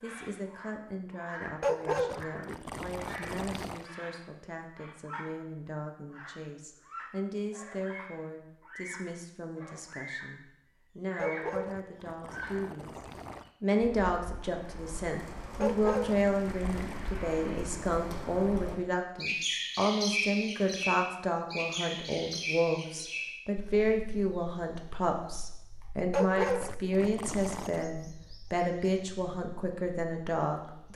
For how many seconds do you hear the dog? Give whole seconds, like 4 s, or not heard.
8 s.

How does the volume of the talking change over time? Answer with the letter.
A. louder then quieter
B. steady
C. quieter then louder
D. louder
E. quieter
D.